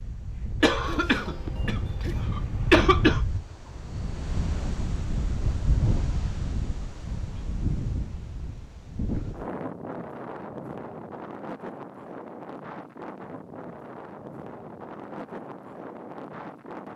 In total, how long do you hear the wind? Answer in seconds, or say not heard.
17 s.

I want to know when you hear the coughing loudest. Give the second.
3 s.